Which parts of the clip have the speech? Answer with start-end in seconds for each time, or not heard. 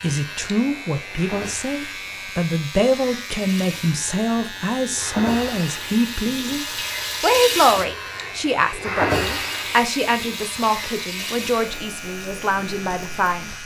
0.0-13.4.